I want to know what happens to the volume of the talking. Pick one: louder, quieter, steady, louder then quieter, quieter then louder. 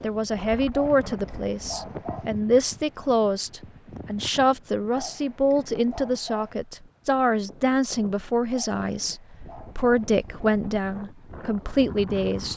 steady.